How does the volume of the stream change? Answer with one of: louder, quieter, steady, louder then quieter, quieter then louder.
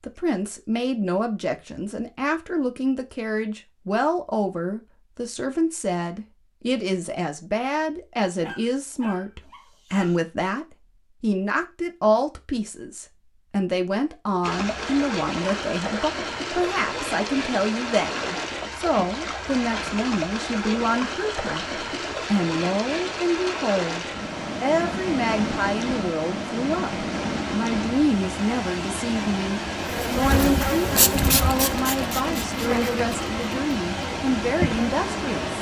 steady.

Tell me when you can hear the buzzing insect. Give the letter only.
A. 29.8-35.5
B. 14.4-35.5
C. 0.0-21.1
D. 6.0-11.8
A.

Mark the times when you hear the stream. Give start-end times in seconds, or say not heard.
14.4-35.5.